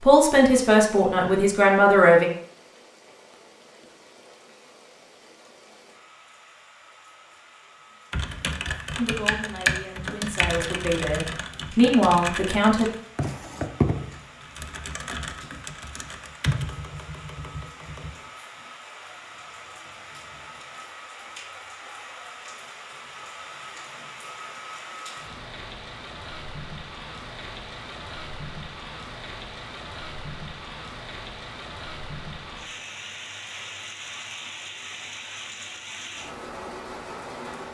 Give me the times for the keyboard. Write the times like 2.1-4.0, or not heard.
8.1-18.1.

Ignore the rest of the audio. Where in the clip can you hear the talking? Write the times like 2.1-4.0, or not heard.
0.0-2.2, 8.9-12.9.